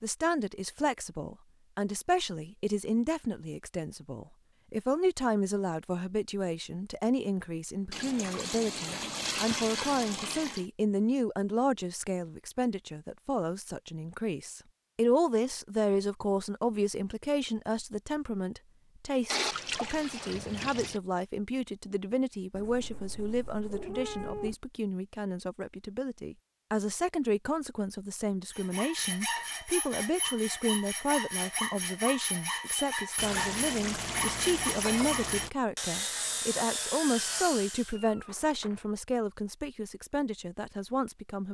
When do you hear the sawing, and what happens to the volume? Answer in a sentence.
The sawing can be heard from 28.5 to 38.0 s, at a steady volume.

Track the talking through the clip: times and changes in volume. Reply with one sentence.
You can hear the talking from 0.0 to 41.4 s, at a steady volume.